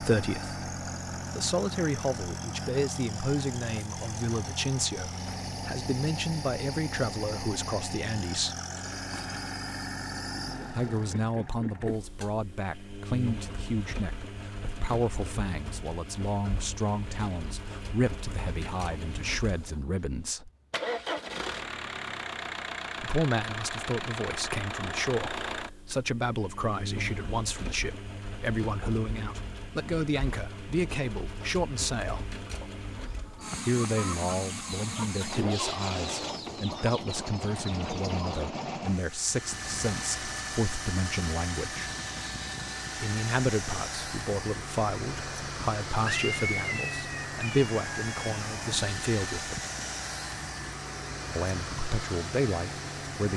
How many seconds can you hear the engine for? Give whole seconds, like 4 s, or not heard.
53 s.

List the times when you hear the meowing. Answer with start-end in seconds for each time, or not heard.
46.0-48.5.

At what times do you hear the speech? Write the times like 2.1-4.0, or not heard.
0.0-8.6, 10.7-20.5, 23.0-32.2, 33.6-41.9, 43.0-49.6, 51.4-53.3.